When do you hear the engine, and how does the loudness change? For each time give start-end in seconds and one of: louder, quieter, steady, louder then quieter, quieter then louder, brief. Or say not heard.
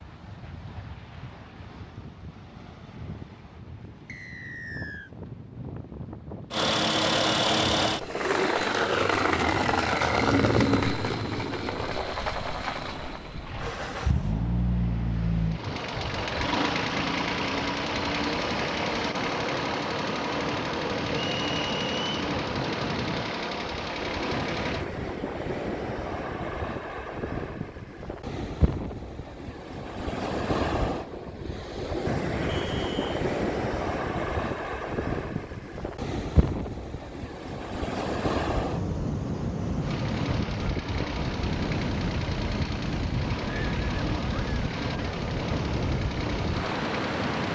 6.5-24.9 quieter
39.8-47.5 steady.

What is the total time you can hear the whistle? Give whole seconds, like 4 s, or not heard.
3 s.